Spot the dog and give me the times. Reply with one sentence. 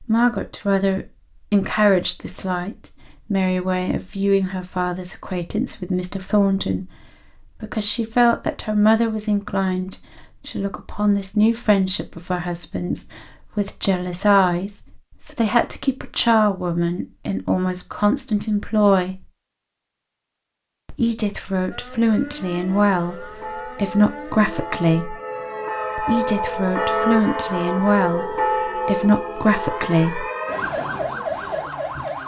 The dog can't be heard in this clip.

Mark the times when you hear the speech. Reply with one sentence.
The speech can be heard from 0.0 to 19.2 s, from 20.9 to 25.1 s and from 25.9 to 30.2 s.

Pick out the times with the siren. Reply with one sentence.
The siren can be heard from 21.7 to 32.2 s.